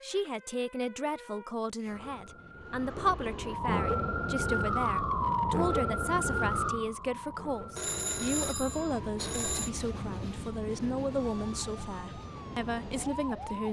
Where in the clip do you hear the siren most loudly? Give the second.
5 s.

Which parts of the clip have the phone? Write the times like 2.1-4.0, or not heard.
7.8-9.7.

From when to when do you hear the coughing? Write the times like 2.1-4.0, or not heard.
not heard.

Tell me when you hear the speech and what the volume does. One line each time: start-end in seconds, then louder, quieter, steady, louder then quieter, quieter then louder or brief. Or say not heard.
0.0-13.6 steady.